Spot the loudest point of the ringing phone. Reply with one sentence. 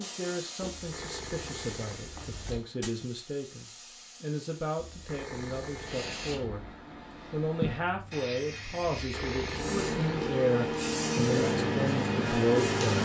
The volume of the ringing phone peaks at 9 seconds.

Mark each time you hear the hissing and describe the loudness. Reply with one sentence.
The hissing can be heard from 0.0 to 13.0 s, getting quieter then louder.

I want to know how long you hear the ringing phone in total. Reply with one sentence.
The ringing phone can be heard for 5 seconds in total.